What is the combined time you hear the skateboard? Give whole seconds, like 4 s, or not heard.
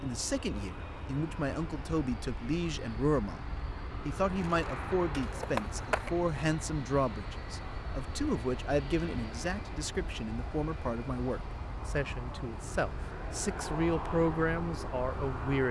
2 s.